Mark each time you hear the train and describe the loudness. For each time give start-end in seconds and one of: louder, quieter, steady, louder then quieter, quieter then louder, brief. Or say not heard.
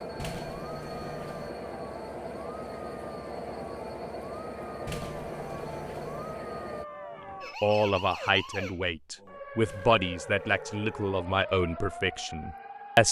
0.0-6.8 steady.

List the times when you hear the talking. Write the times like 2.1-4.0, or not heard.
7.6-13.0.